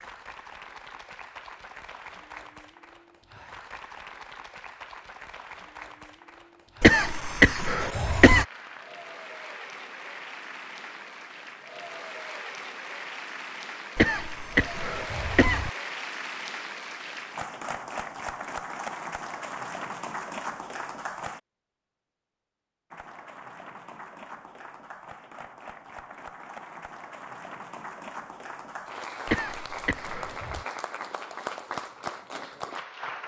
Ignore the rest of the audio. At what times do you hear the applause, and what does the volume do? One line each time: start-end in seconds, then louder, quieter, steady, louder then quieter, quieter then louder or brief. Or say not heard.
0.0-21.4 louder
22.9-33.2 louder.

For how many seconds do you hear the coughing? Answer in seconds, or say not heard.
5 s.